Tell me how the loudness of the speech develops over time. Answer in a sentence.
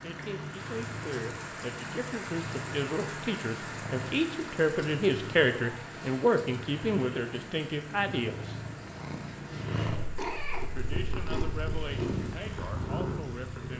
The volume of the speech goes up, then down.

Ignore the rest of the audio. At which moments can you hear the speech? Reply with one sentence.
You can hear the speech from 0.0 to 8.6 s and from 10.7 to 13.7 s.